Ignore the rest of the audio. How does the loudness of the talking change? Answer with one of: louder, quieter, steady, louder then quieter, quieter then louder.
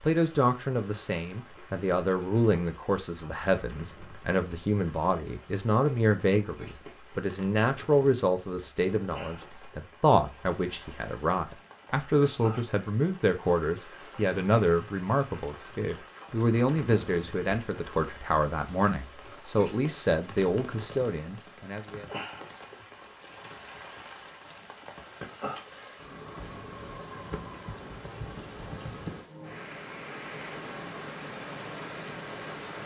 steady.